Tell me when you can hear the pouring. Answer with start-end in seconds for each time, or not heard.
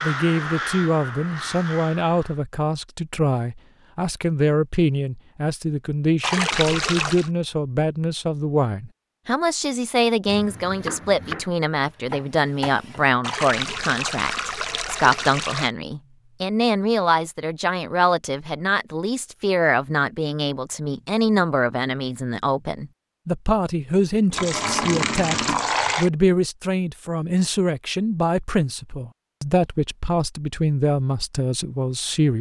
6.2-7.3, 13.2-15.7, 24.3-26.1.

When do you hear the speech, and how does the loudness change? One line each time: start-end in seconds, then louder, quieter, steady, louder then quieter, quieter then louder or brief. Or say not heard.
0.0-32.3 steady.